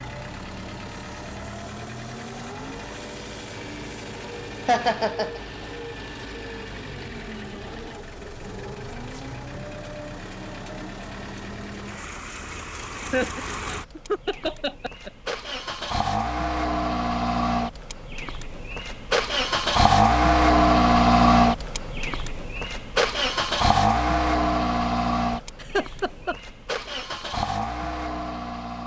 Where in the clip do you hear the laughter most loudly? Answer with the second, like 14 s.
5 s.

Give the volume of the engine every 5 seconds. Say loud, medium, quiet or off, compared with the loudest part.
quiet, quiet, quiet, medium, loud, medium.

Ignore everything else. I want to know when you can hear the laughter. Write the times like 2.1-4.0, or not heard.
4.7-5.4, 13.1-15.3, 25.6-26.4.